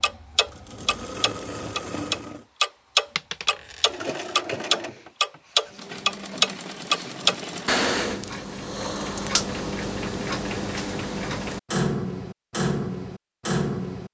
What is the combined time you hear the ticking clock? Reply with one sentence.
You can hear the ticking clock for 14 seconds altogether.